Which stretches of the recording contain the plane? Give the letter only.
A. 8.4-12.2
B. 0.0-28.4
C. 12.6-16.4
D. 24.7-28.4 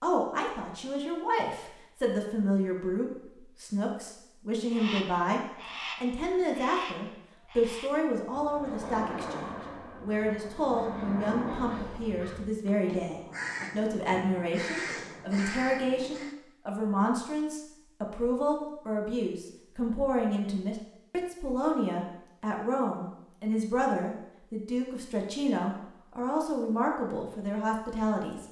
A.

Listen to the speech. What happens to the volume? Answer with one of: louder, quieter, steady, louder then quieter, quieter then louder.
steady.